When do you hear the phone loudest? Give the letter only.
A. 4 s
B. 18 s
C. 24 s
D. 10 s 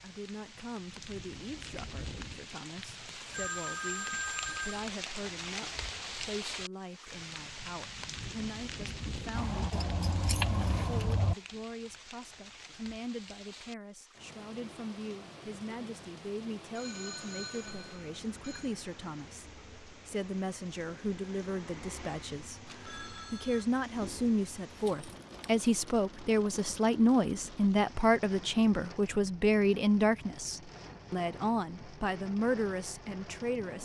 A.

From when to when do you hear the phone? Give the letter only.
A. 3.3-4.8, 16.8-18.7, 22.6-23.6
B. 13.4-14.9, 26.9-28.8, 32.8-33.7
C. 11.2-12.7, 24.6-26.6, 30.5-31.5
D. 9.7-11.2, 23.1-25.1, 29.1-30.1
A.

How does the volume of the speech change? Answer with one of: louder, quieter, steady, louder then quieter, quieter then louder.
louder.